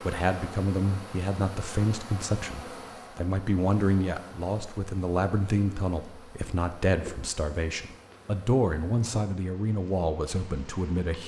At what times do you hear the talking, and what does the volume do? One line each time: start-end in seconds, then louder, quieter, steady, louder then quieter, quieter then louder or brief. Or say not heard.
0.0-11.2 steady.